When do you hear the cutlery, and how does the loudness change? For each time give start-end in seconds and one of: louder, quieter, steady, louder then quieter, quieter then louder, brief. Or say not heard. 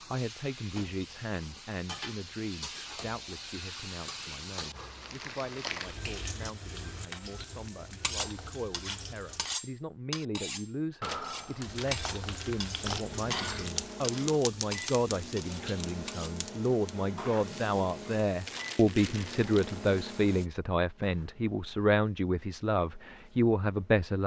8.0-16.4 steady.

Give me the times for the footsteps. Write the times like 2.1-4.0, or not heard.
not heard.